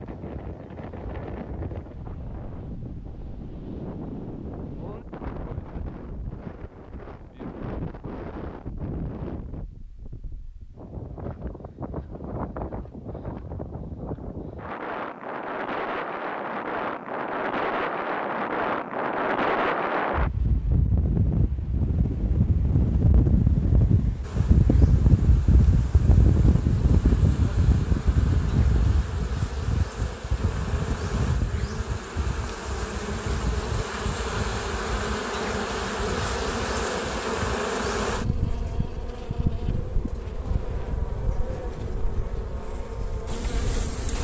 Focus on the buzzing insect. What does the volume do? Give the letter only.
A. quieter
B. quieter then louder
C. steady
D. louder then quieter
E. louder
D.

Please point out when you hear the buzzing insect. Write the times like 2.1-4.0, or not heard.
24.2-44.1.